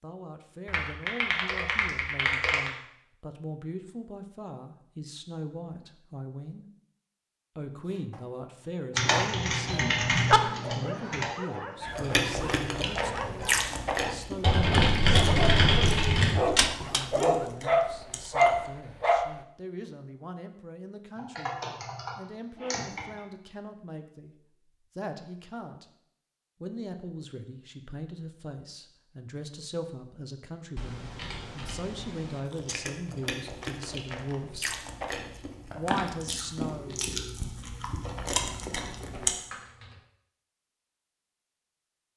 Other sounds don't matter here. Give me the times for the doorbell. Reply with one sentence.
You can hear the doorbell from 9.7 to 10.4 s.